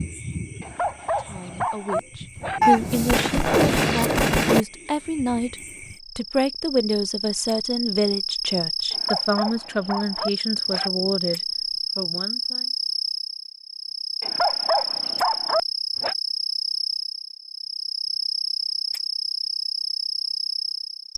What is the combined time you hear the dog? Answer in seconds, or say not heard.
6 s.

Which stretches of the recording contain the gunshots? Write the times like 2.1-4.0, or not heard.
2.6-4.7.